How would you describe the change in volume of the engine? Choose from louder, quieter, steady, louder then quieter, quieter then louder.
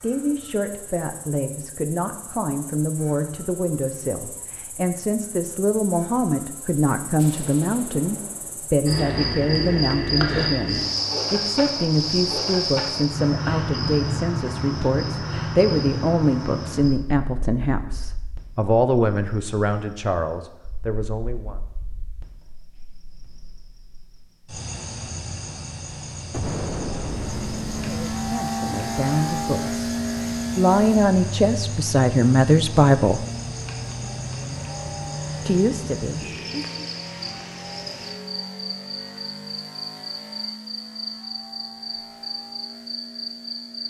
quieter.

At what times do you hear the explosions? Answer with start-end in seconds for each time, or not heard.
7.2-8.8, 26.3-28.4.